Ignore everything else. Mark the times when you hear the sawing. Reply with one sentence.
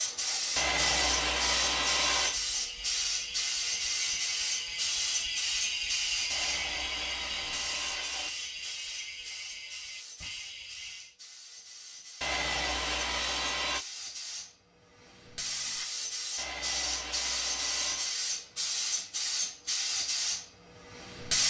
The sawing can be heard from 0.6 to 2.4 s, from 6.3 to 8.3 s, from 12.2 to 13.8 s and from 16.4 to 18.1 s.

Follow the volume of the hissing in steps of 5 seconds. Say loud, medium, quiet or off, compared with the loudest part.
loud, medium, quiet, loud, loud.